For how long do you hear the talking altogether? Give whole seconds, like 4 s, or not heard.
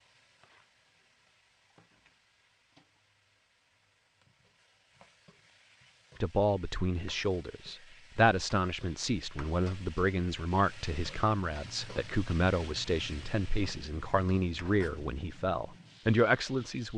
11 s.